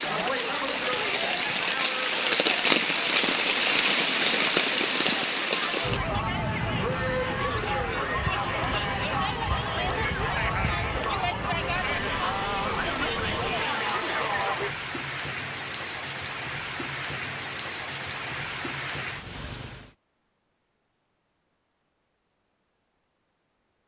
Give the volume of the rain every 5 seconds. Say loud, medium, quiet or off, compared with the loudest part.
loud, medium, medium, medium, off.